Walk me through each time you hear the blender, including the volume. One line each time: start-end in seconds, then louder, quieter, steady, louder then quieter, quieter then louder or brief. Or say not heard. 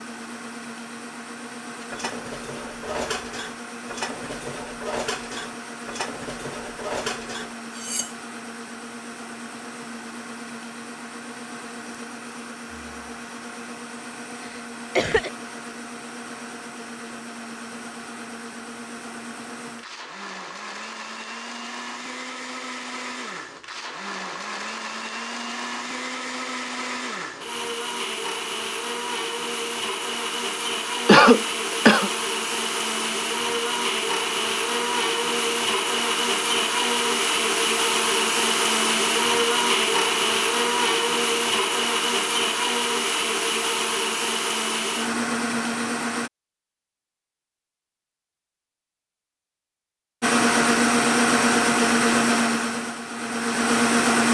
0.0-46.3 louder
50.2-54.3 quieter then louder.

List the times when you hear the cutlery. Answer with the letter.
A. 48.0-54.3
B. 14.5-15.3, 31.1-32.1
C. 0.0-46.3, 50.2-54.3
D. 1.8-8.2
D.